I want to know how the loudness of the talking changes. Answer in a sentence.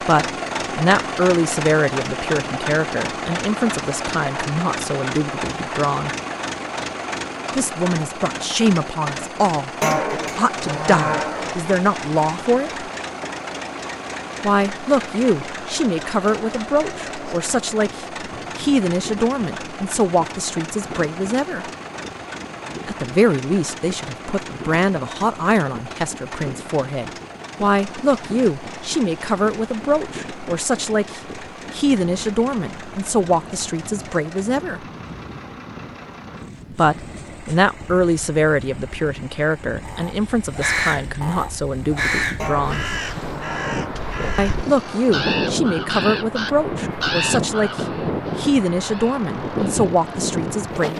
The loudness of the talking stays about the same.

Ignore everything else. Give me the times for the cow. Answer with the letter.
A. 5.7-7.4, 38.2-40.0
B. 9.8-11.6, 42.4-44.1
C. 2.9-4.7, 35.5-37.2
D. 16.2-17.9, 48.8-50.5
B.